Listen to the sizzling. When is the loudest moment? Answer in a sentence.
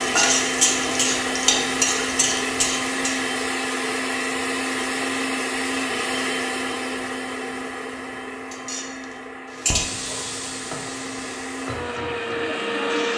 The loudest moment of the sizzling is at 1 second.